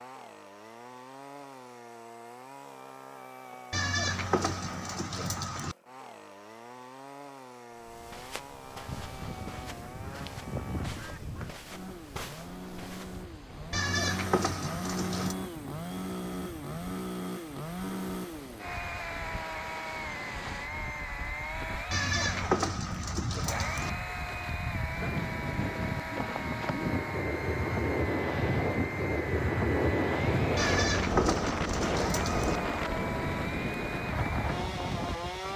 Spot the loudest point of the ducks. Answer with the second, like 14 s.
11 s.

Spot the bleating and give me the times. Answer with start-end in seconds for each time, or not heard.
3.7-5.8, 13.7-15.3, 21.9-23.9, 30.6-32.6.